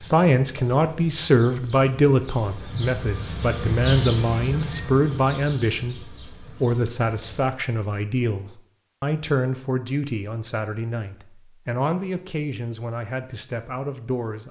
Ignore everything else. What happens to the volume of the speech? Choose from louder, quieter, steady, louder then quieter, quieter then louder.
quieter.